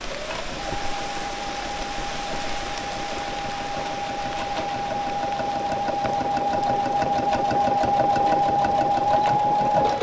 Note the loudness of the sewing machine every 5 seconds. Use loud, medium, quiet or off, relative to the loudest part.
medium, loud.